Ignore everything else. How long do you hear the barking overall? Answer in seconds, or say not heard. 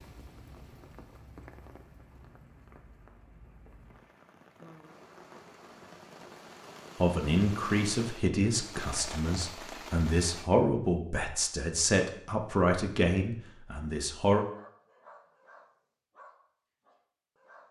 3 s.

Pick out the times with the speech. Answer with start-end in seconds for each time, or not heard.
7.0-14.4.